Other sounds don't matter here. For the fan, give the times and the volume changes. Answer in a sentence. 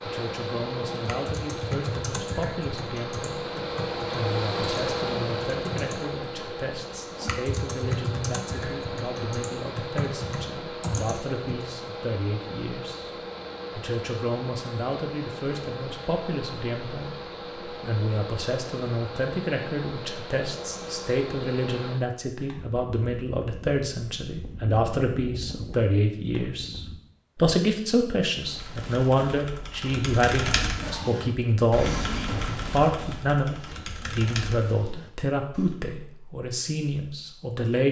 You can hear the fan from 0.0 to 26.9 s, getting quieter.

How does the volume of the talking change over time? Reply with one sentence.
The volume of the talking goes up.